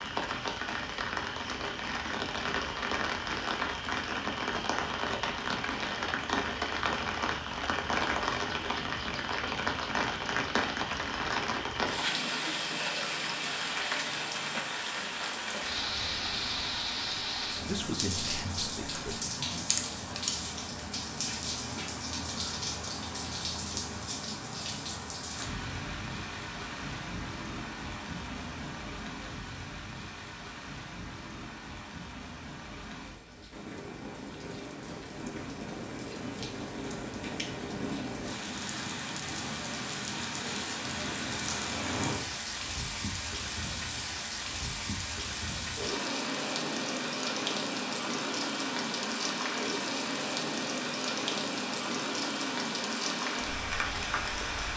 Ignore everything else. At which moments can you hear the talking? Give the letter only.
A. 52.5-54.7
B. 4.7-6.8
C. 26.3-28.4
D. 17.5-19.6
D.